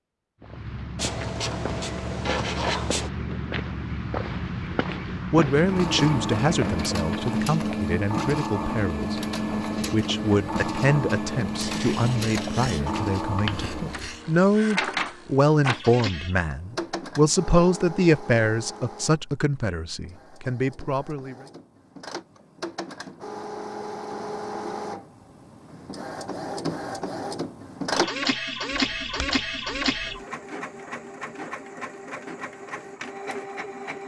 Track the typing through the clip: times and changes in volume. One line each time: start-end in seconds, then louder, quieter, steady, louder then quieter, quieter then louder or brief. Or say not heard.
not heard.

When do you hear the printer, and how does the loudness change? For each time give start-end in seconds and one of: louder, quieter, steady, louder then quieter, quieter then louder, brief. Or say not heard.
5.5-34.0 quieter then louder.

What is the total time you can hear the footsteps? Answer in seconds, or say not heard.
7 s.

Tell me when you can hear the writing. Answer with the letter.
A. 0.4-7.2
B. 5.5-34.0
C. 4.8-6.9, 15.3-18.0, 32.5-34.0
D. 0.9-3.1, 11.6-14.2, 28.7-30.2
D.